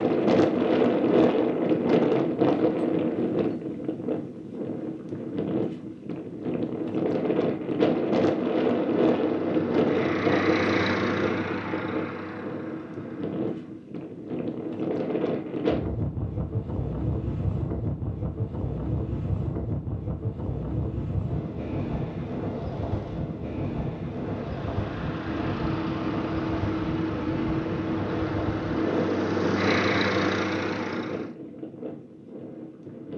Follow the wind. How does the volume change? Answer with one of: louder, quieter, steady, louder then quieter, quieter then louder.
quieter.